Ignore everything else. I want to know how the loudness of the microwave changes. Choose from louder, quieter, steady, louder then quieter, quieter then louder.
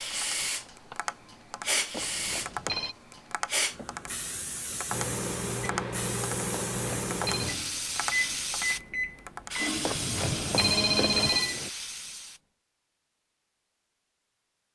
steady.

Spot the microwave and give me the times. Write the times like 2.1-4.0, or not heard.
4.9-11.7.